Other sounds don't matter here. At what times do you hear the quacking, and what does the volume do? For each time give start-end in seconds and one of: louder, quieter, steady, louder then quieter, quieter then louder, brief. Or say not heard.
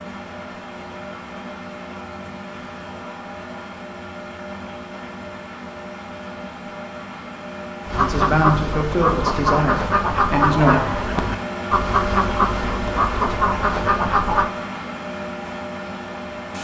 7.8-14.5 steady.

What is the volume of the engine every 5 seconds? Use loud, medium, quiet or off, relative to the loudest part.
medium, medium, loud, loud.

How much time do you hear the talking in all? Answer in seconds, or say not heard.
3 s.